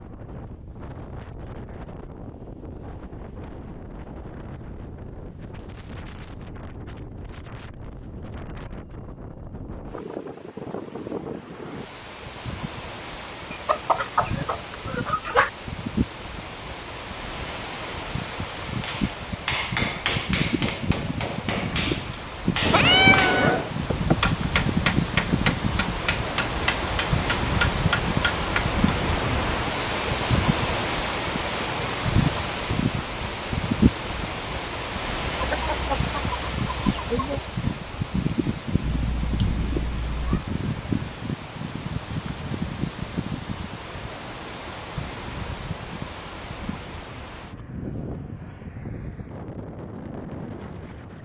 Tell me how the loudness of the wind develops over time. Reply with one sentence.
The loudness of the wind goes up, then down.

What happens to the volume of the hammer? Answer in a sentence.
The volume of the hammer stays about the same.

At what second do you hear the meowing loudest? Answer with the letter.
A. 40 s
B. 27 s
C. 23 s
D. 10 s
C.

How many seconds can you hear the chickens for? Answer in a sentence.
The chickens can be heard for 4 seconds in total.